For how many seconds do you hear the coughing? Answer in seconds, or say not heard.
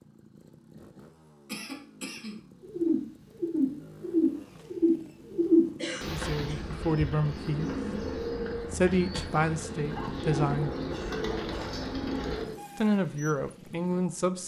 4 s.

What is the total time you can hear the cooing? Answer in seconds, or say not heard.
10 s.